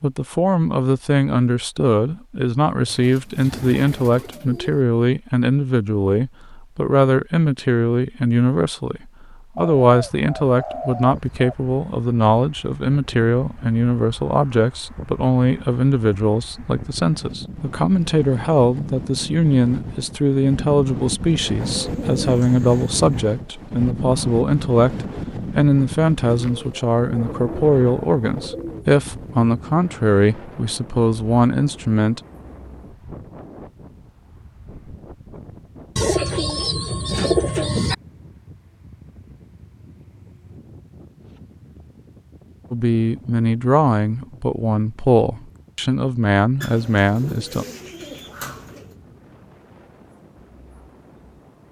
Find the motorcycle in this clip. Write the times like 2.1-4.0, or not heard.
not heard.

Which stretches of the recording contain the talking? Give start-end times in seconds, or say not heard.
0.0-32.2, 42.7-47.6.